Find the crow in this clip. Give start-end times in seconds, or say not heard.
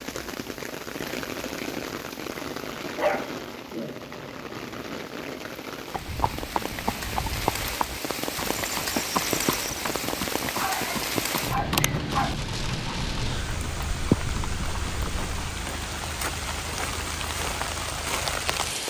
not heard.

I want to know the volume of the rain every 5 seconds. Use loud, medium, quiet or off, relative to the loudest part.
medium, loud, loud, loud.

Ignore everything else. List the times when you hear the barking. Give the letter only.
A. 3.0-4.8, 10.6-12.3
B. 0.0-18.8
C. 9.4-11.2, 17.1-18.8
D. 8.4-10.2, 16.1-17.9
A.